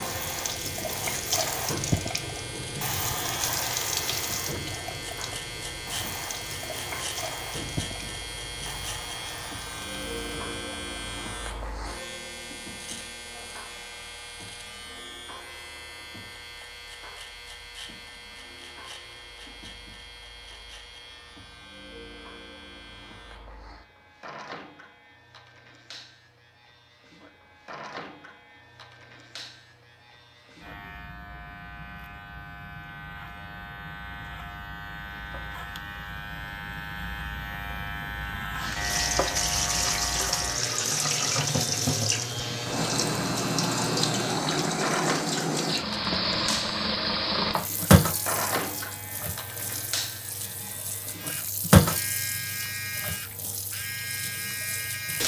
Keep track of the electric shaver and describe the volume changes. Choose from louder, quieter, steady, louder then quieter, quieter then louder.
quieter then louder.